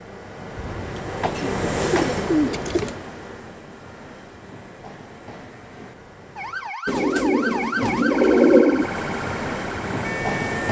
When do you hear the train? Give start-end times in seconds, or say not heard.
0.0-6.8, 8.7-10.6.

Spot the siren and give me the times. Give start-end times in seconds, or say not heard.
6.3-10.6.